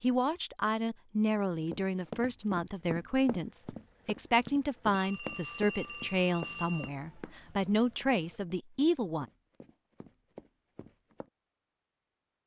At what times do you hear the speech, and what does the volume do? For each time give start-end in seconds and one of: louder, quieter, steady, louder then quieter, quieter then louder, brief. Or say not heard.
0.0-9.2 steady.